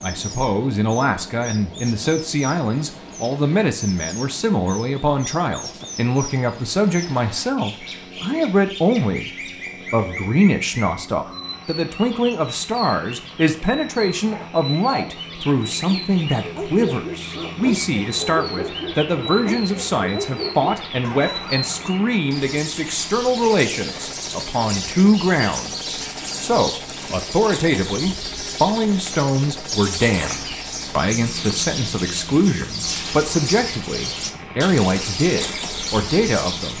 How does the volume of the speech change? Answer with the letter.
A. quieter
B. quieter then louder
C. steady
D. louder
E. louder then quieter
C.